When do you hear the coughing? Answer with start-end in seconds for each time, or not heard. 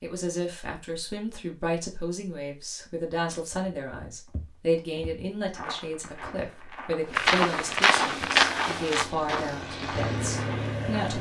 not heard.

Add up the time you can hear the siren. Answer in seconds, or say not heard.
not heard.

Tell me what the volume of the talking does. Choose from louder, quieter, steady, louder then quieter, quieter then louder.
steady.